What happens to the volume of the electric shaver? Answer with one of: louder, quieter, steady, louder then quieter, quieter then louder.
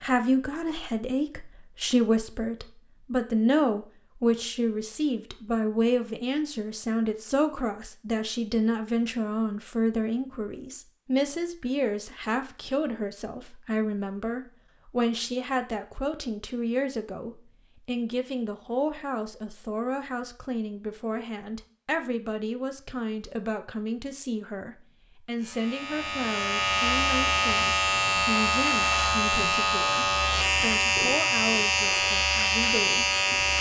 steady.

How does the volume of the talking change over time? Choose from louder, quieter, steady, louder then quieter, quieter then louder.
quieter.